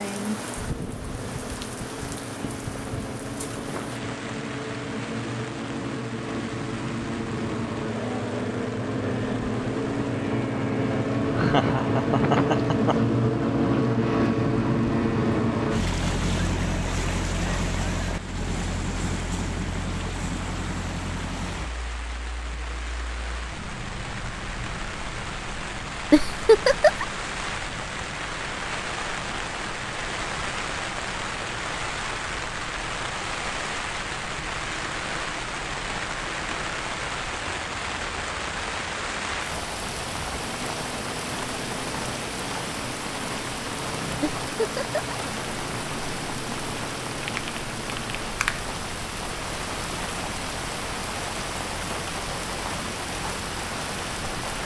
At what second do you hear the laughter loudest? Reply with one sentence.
The volume of the laughter peaks at 27 seconds.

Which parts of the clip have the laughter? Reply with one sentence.
You can hear the laughter from 11.3 to 13.2 s, from 26.1 to 27.1 s and from 44.2 to 45.1 s.